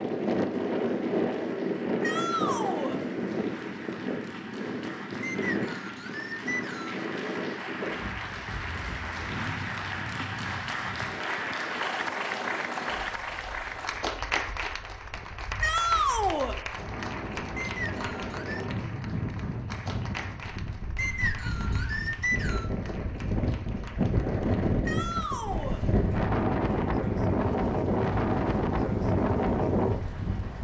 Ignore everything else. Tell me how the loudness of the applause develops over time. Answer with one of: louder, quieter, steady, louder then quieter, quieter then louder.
louder then quieter.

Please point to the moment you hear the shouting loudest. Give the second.
16 s.